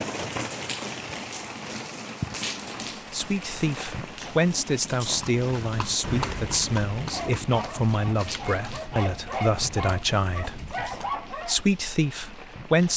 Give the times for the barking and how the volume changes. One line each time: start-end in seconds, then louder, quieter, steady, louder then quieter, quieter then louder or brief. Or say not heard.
6.9-11.6 louder.